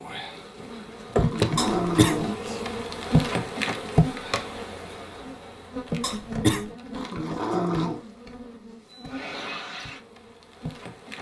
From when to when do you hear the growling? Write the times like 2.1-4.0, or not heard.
1.1-2.6, 7.0-8.0.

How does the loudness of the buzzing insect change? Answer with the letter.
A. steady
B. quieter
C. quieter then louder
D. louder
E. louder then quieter
B.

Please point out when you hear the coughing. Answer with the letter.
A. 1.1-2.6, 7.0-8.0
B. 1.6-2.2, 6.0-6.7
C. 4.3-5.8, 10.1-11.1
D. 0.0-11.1
B.